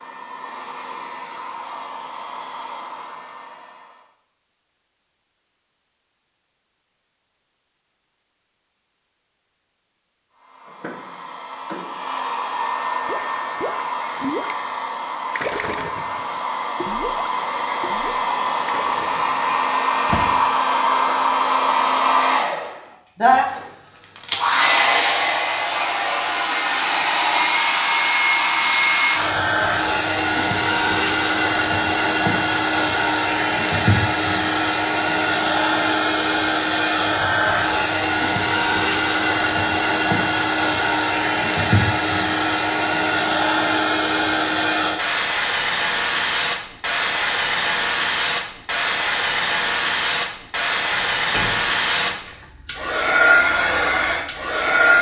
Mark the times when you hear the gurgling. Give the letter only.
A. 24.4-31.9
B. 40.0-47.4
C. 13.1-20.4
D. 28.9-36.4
C.